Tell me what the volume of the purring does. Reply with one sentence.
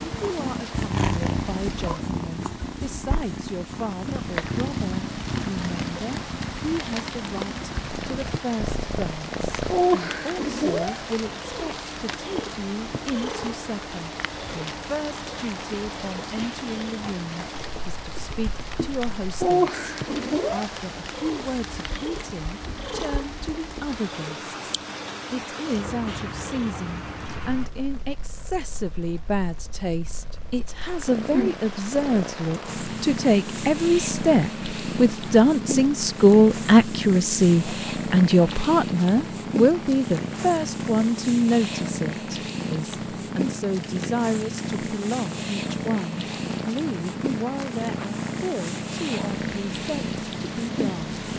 The loudness of the purring goes down, then up.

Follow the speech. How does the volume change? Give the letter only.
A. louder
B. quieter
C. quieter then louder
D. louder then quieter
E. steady
D.